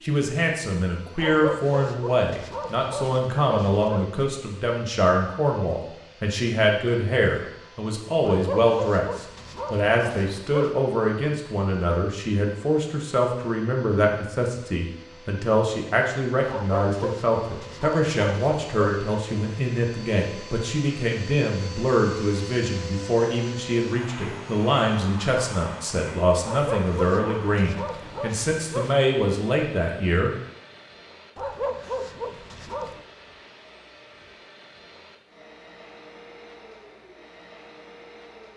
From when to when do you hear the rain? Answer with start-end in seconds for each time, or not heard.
not heard.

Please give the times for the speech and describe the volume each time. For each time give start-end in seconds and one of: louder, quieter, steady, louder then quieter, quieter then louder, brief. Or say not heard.
0.0-30.3 steady.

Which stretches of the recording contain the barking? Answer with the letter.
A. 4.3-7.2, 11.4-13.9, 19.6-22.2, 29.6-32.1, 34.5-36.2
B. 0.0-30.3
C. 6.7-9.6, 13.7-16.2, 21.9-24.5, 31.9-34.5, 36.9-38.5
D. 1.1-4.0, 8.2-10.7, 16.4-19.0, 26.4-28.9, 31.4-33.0
D.